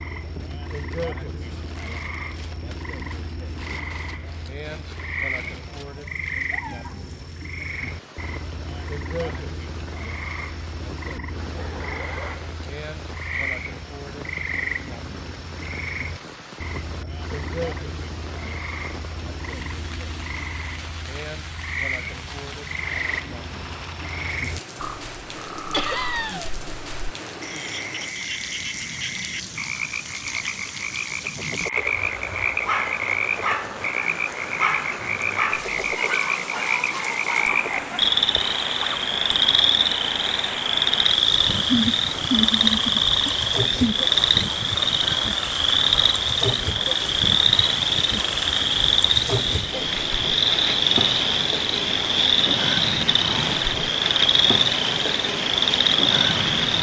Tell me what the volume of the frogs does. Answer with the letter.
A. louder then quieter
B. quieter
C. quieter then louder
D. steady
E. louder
E.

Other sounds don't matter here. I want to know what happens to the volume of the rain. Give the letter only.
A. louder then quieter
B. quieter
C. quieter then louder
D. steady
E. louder
E.